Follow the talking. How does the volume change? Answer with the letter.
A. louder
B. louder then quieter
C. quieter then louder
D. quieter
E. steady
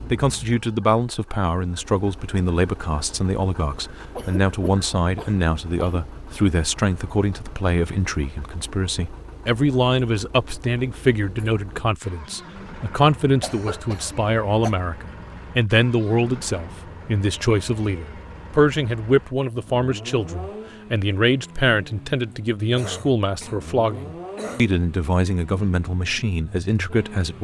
E.